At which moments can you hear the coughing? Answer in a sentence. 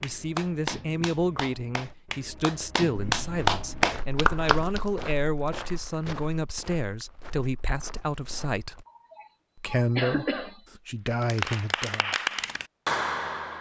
The coughing can be heard from 8.8 to 10.6 s.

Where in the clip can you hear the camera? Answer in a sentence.
The camera can't be heard in this clip.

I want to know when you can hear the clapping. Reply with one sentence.
The clapping can be heard from 0.0 to 5.0 s and from 11.1 to 13.5 s.